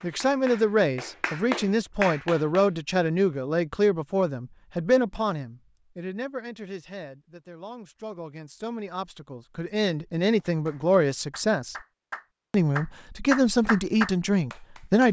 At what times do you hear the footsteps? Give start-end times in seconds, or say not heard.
not heard.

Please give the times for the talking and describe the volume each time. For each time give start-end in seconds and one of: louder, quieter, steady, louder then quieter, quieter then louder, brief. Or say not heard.
0.0-11.8 quieter then louder
12.5-15.0 brief.